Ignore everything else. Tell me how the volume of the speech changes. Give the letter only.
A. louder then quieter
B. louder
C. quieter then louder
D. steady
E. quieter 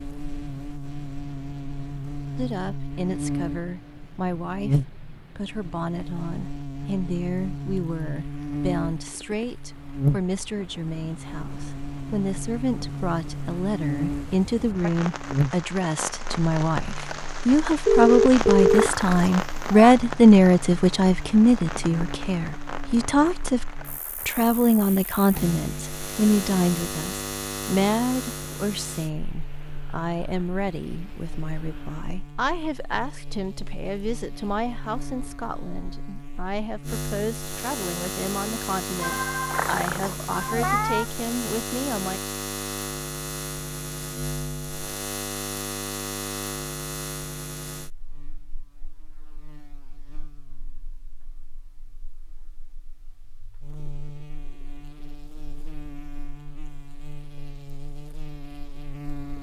A.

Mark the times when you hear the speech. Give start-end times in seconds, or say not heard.
2.4-42.2.